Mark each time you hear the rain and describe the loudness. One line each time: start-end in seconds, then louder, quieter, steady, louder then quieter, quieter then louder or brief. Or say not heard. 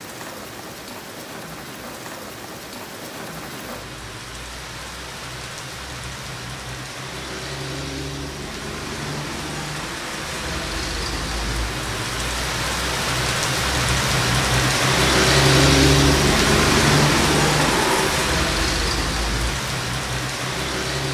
0.0-21.0 louder.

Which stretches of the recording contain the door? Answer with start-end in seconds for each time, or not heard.
17.2-18.4.